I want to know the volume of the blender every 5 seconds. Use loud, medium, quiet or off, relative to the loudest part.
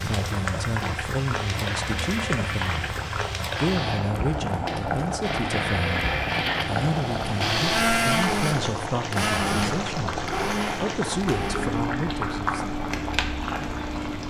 medium, loud, medium.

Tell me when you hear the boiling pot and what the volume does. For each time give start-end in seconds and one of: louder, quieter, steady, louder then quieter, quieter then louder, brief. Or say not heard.
0.0-14.2 steady.